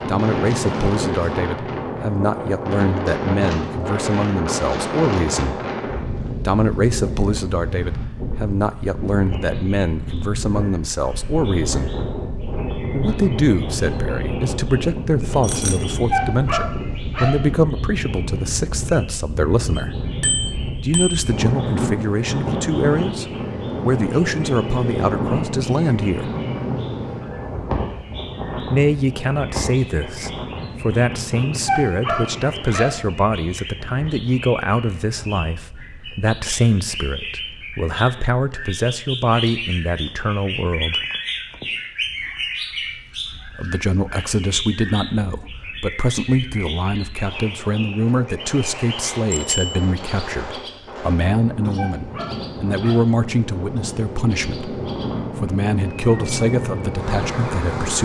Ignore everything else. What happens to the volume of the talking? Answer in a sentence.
The volume of the talking stays about the same.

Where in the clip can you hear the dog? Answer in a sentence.
The dog can be heard from 16.1 to 17.4 s, from 31.6 to 33.0 s and from 51.8 to 53.1 s.